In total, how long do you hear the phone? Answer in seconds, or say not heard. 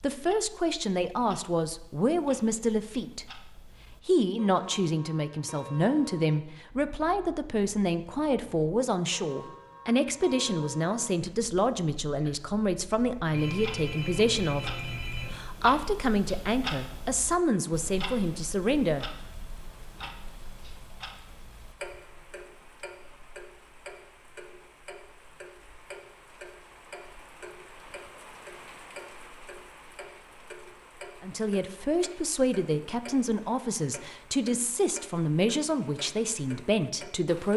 2 s.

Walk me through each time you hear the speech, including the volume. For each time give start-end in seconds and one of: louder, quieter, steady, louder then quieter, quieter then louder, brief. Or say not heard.
0.0-19.1 steady
31.2-37.5 steady.